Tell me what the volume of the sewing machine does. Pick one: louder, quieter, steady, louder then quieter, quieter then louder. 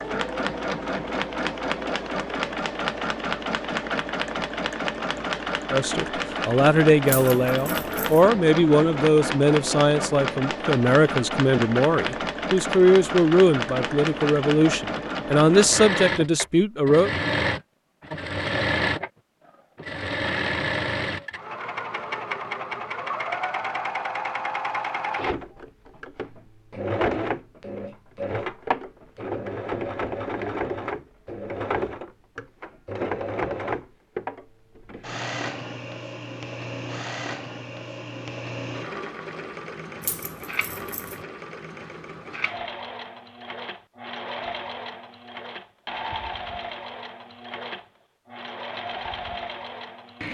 quieter.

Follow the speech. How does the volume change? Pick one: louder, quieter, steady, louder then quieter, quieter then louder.
steady.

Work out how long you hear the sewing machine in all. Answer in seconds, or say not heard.
50 s.